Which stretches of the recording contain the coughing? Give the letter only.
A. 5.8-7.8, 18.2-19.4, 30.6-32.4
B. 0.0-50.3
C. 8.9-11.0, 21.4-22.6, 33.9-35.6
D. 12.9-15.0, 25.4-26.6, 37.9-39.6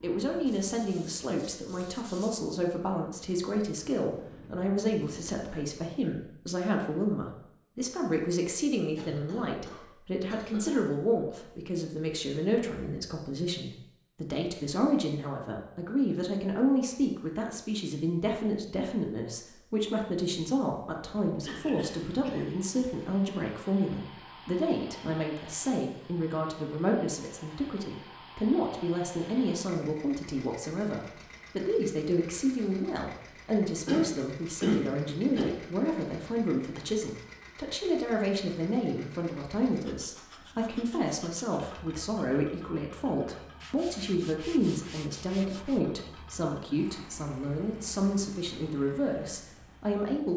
C.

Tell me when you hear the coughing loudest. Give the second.
35 s.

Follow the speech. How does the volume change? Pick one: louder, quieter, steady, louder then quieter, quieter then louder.
steady.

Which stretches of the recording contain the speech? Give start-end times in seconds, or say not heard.
0.0-50.3.